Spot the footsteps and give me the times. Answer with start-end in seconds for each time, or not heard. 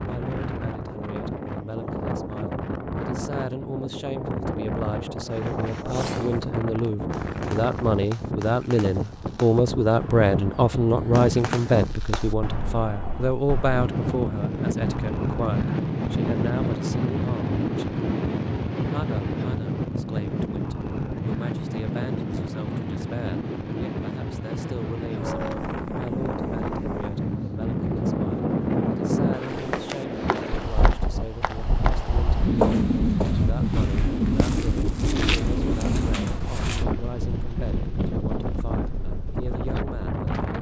29.5-36.9.